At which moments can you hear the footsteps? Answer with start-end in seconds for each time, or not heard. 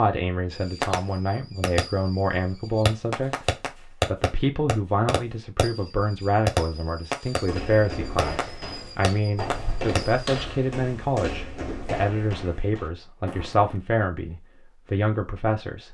7.3-13.8.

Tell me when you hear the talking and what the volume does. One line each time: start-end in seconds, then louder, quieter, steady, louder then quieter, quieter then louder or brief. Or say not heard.
0.0-15.8 steady.